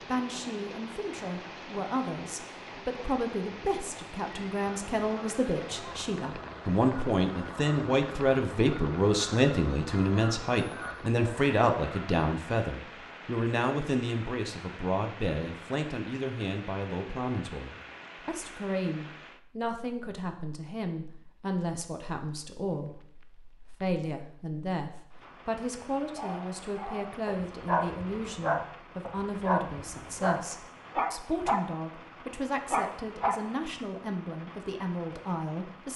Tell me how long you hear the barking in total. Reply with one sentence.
The barking can be heard for 7 seconds in total.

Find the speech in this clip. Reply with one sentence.
You can hear the speech from 0.1 to 35.9 s.